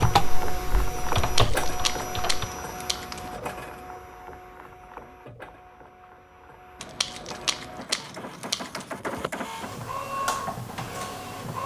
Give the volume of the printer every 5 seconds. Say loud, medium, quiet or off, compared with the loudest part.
loud, medium, loud.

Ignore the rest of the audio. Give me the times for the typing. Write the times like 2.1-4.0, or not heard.
0.0-2.5.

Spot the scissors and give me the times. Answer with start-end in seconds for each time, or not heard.
1.1-3.4, 6.8-8.9.